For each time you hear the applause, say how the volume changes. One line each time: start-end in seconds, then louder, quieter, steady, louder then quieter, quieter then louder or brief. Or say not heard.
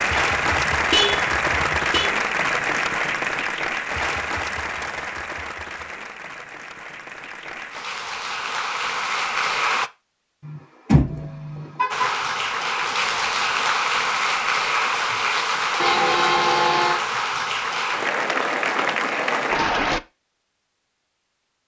0.0-9.9 quieter then louder
11.9-20.0 steady.